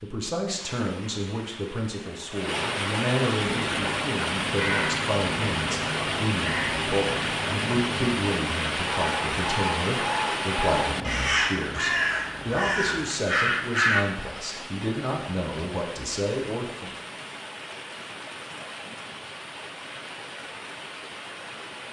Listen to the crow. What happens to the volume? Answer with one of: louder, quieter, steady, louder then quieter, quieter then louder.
louder.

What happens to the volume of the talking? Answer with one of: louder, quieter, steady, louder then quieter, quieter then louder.
steady.